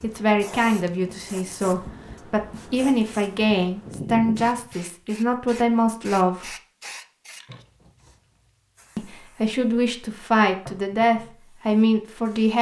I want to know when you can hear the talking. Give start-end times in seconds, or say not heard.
0.0-6.5, 8.9-12.5.